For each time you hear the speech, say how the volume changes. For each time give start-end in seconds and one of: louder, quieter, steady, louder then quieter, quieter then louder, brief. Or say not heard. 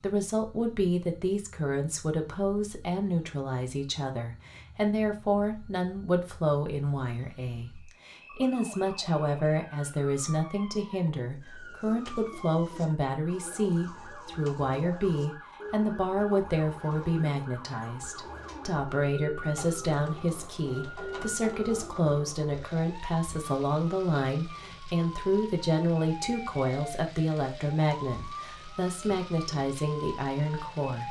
0.0-31.0 steady.